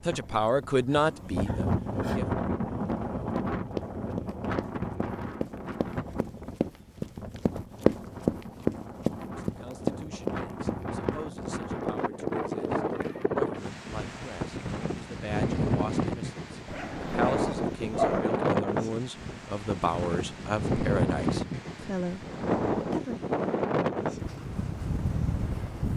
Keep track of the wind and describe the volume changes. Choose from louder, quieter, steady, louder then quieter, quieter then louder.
quieter then louder.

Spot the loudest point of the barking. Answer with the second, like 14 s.
18 s.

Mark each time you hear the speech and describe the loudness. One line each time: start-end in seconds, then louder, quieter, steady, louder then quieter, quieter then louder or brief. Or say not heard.
0.1-2.2 brief
9.2-23.2 louder.